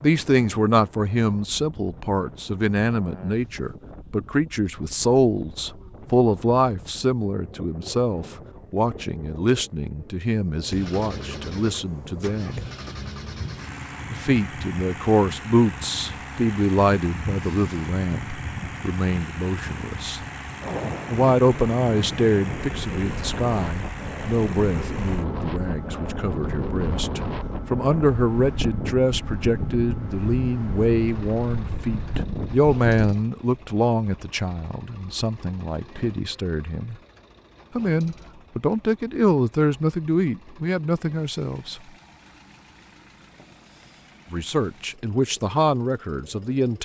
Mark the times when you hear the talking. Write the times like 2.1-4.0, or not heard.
0.0-12.7, 14.1-20.2, 21.1-37.0, 37.8-41.8, 44.3-46.8.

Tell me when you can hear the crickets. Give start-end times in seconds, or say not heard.
not heard.